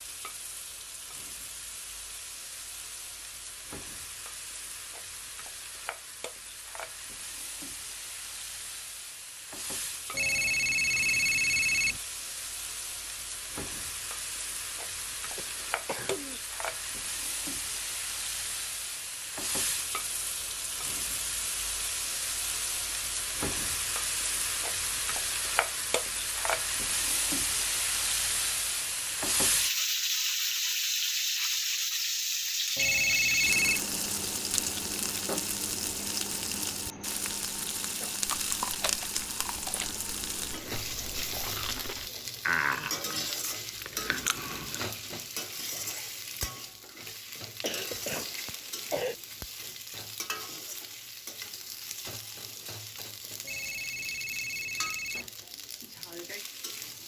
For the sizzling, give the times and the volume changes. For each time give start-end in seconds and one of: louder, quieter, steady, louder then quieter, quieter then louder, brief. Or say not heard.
0.0-57.0 louder then quieter.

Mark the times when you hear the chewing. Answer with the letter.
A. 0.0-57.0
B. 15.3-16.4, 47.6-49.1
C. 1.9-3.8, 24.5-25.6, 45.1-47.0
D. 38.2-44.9
D.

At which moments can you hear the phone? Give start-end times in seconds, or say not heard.
10.1-12.0, 32.8-33.8, 53.4-55.3.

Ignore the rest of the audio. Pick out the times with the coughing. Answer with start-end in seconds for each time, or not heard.
15.3-16.4, 47.6-49.1.